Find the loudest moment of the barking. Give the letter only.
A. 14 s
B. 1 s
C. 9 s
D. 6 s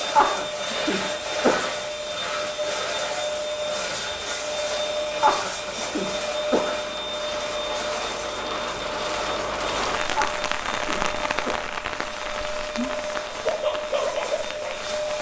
A.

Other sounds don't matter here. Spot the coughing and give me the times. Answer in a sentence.
You can hear the coughing from 0.1 to 1.8 s, from 5.2 to 6.8 s and from 10.2 to 11.6 s.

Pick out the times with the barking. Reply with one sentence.
You can hear the barking from 12.7 to 14.9 s.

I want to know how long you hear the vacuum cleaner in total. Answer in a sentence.
You can hear the vacuum cleaner for 15 seconds altogether.